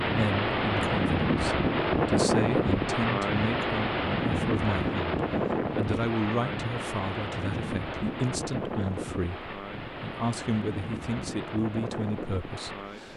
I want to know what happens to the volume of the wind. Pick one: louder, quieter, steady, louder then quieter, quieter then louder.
quieter.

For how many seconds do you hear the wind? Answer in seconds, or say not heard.
13 s.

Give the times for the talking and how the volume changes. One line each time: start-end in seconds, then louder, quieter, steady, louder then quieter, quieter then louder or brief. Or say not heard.
0.0-13.1 steady.